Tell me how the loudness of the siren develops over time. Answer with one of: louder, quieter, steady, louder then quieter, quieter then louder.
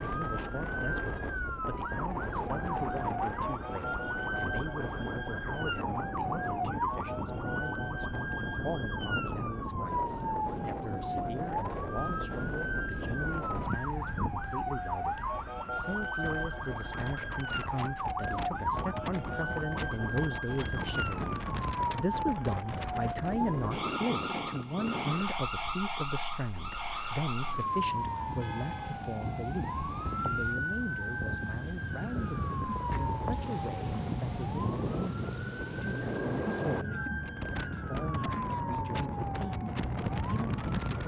steady.